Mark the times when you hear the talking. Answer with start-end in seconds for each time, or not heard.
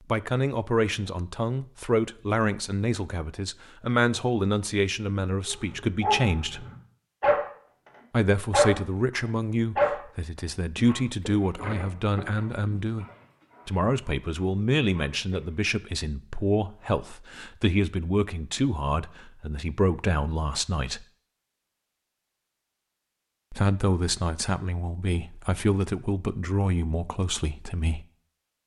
0.1-6.7, 8.1-13.1, 13.7-21.1, 23.5-28.1.